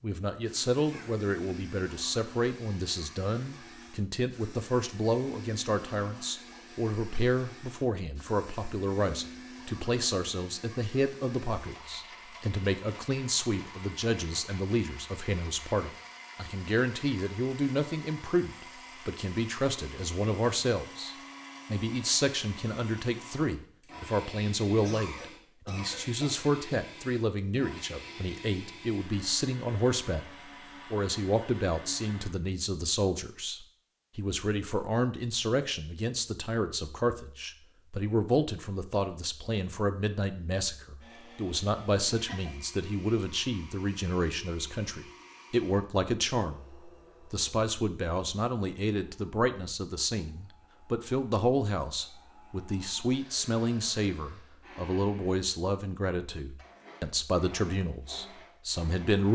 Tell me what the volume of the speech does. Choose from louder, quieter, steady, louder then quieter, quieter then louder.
steady.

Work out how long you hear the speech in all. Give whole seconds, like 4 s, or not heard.
59 s.